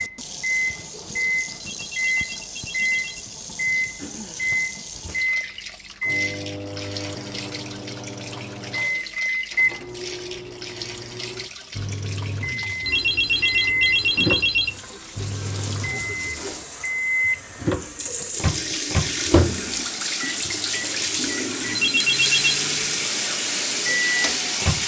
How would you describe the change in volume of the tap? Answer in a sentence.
The loudness of the tap goes up.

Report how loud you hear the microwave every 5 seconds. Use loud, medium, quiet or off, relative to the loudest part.
loud, loud, medium, loud, medium.